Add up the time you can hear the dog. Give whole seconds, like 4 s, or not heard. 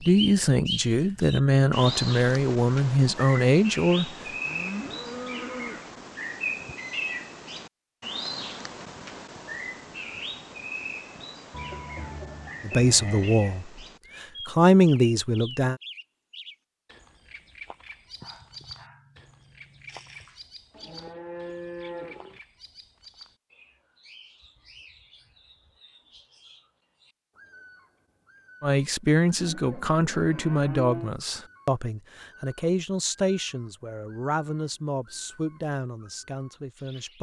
2 s.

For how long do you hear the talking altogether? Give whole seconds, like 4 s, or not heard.
16 s.